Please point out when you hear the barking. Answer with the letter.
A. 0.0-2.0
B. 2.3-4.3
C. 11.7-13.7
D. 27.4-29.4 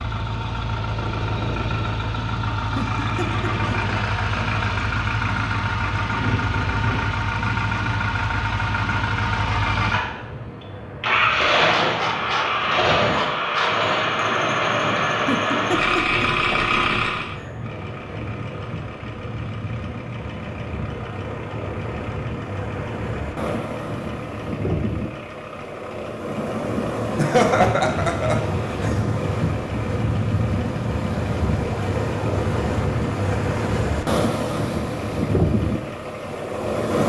C.